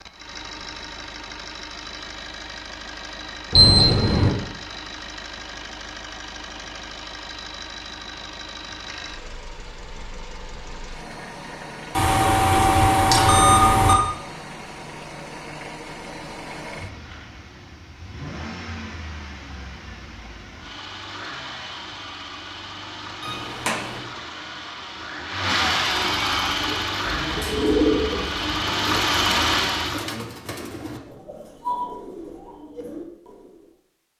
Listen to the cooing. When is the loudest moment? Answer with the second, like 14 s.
28 s.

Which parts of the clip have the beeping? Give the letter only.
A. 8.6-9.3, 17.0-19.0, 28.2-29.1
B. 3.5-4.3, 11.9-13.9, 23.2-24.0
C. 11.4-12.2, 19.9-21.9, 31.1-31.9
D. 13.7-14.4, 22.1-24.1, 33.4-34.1
B.